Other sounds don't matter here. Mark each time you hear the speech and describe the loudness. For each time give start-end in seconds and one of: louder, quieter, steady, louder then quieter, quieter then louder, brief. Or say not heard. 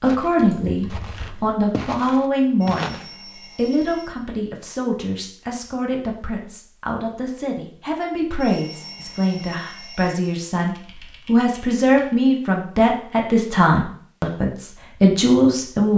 0.0-3.0 brief
3.5-15.9 louder.